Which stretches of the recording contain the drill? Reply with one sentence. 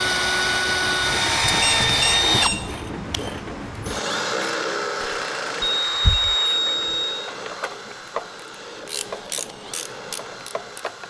You can hear the drill from 0.0 to 11.0 s.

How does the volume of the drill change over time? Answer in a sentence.
The volume of the drill goes down.